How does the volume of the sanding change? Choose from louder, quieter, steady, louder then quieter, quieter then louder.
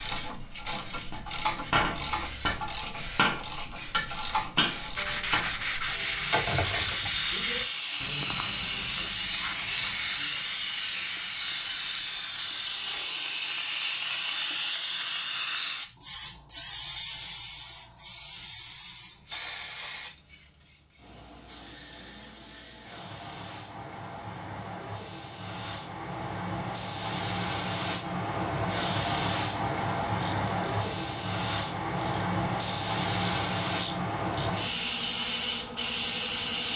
quieter.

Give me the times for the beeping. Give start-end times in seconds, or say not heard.
not heard.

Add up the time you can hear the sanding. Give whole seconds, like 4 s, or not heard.
8 s.